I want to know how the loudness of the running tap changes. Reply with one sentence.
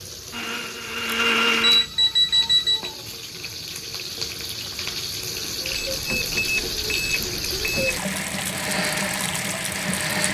The volume of the running tap goes up.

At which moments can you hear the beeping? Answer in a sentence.
You can hear the beeping from 1.6 to 2.9 s and from 5.9 to 8.0 s.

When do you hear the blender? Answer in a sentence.
You can hear the blender from 0.0 to 1.9 s and from 8.5 to 10.2 s.